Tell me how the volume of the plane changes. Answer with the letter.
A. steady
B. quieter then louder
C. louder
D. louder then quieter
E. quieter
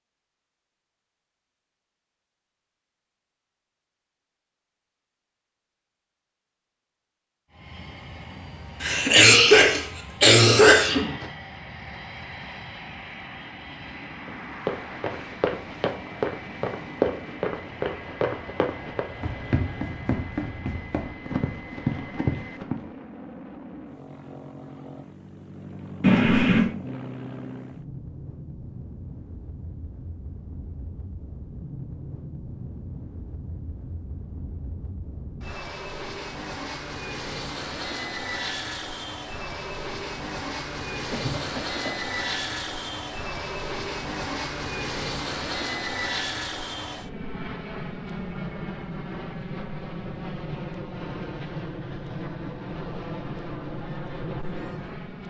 C.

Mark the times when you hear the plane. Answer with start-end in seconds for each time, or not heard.
7.5-55.2.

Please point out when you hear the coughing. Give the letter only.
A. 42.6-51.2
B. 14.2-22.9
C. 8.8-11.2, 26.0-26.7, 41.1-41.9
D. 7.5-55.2
C.